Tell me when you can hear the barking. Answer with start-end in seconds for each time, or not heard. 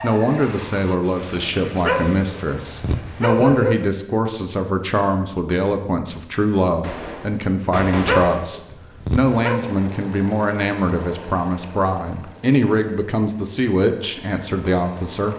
1.9-3.8, 8.1-9.7.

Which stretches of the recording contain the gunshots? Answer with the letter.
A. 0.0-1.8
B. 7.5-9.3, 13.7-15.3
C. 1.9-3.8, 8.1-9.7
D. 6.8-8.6
D.